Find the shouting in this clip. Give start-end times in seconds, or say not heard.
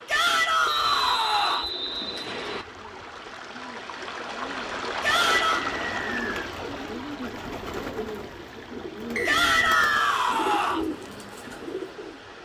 0.1-1.7, 5.0-5.7, 9.2-10.8.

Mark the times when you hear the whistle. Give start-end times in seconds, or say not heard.
0.7-2.6, 5.7-6.2, 9.2-10.2.